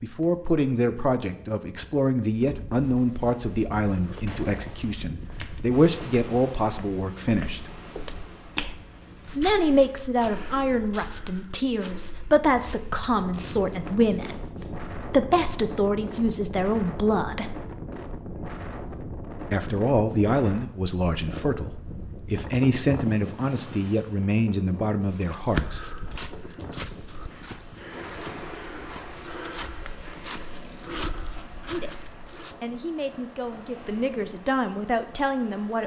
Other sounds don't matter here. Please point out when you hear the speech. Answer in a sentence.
You can hear the speech from 0.0 to 7.6 s, from 9.3 to 17.6 s, from 19.5 to 25.9 s and from 31.6 to 35.8 s.